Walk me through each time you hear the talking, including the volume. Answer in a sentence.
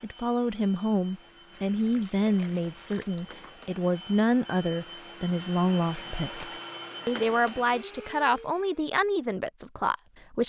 You can hear the talking from 0.0 to 10.4 s, at a steady volume.